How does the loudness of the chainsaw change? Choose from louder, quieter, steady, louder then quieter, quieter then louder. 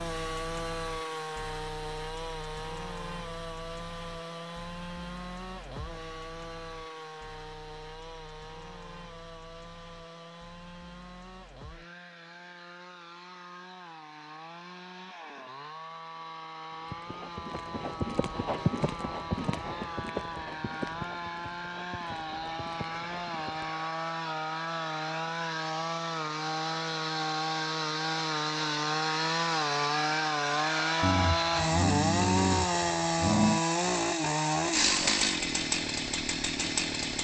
quieter then louder.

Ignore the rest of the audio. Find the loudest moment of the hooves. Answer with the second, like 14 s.
19 s.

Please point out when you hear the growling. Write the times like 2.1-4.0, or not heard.
31.0-33.6.